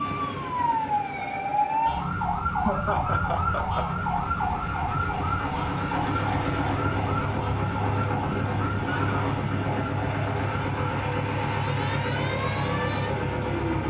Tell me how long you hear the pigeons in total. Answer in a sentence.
The pigeons can't be heard in this clip.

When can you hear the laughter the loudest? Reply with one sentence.
The volume of the laughter peaks at 3 seconds.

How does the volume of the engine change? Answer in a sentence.
The loudness of the engine goes up.